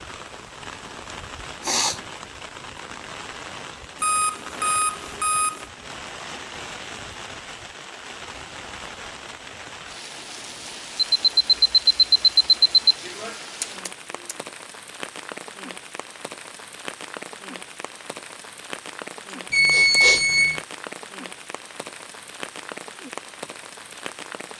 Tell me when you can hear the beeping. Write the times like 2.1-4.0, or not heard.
4.0-5.7, 10.9-12.9, 19.5-20.6.